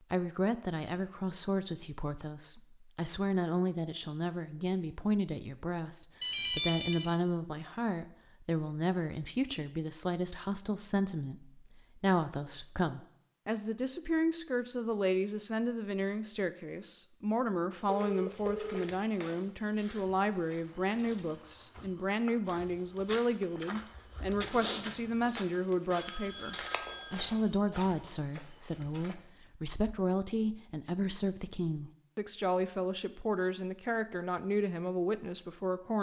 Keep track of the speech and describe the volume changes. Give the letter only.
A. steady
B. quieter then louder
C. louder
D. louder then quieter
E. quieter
A.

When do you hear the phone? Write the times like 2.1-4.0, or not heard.
6.2-7.1, 17.9-18.9, 26.0-27.4.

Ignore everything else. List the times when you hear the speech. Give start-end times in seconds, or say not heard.
0.1-35.9.